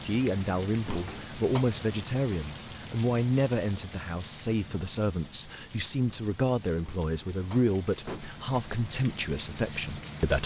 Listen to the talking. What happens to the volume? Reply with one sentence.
The volume of the talking stays about the same.